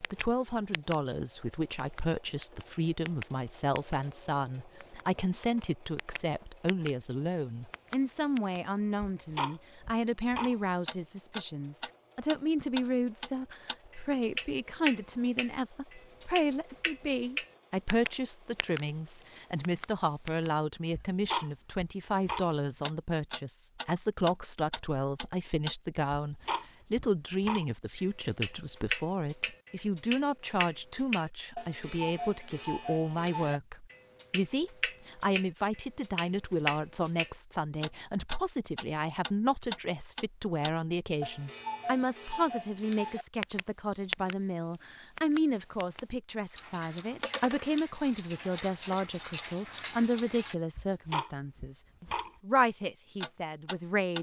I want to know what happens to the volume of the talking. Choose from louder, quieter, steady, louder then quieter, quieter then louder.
steady.